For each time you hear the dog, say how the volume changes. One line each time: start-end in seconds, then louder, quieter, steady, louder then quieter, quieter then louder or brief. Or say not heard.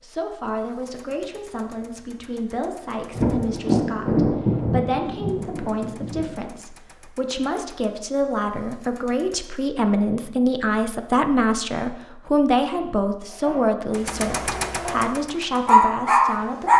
12.7-16.7 louder.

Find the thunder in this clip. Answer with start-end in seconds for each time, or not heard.
3.1-6.3.